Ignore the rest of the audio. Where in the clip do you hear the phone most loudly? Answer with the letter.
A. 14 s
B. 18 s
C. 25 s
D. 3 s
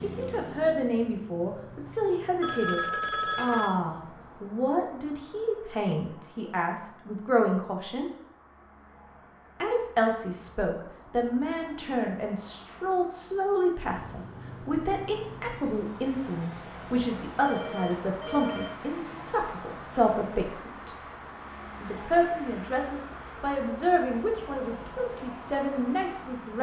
D.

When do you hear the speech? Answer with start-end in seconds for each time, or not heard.
0.0-8.1, 9.6-20.9, 21.8-26.5.